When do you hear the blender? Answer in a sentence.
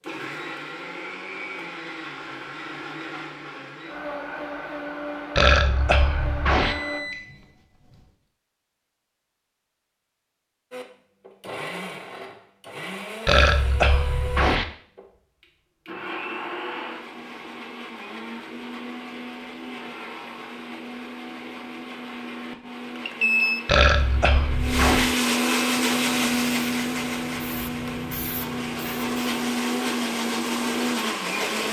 The blender can be heard from 0.0 to 7.0 s and from 10.7 to 31.6 s.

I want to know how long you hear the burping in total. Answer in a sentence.
You can hear the burping for 4 seconds altogether.